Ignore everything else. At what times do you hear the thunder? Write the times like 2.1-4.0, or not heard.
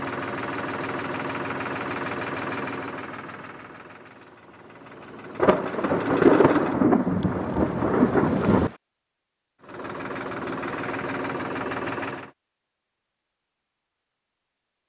5.3-8.7.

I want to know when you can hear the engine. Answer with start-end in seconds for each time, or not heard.
0.0-6.8, 9.6-12.3.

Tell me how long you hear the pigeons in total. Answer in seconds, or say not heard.
not heard.